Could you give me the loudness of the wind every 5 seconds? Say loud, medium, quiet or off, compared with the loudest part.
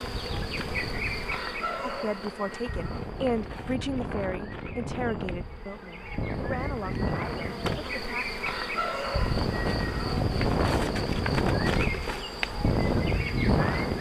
medium, medium, loud.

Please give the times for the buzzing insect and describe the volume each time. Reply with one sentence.
The buzzing insect can be heard from 0.0 to 13.9 s, getting quieter then louder.